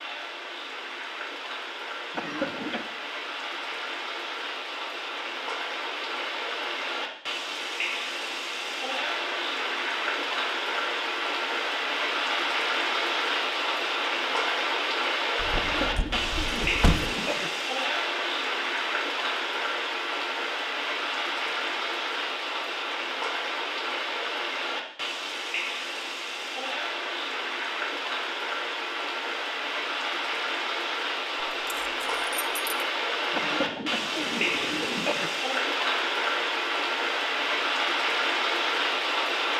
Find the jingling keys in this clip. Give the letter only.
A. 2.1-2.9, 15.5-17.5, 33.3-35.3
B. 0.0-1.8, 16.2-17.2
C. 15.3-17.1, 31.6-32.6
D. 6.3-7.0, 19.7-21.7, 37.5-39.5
C.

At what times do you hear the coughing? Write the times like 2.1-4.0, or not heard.
2.1-2.9, 15.5-17.5, 33.3-35.3.